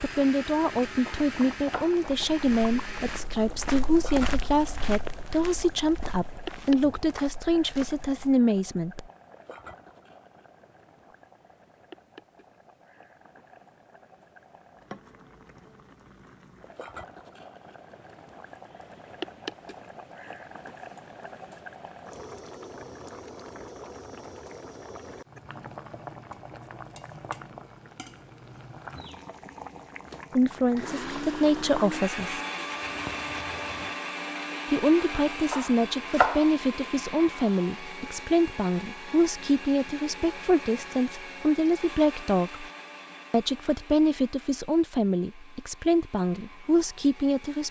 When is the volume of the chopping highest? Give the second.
36 s.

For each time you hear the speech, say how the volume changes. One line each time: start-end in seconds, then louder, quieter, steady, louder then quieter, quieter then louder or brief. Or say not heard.
0.0-9.1 steady
30.4-32.4 brief
34.7-42.6 steady
43.3-47.6 quieter then louder.